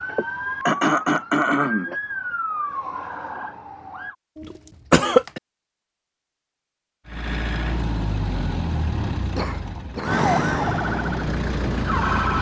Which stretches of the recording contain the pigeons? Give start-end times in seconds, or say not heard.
not heard.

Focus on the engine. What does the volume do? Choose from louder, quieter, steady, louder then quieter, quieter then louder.
quieter then louder.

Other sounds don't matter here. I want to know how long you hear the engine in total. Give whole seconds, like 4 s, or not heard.
5 s.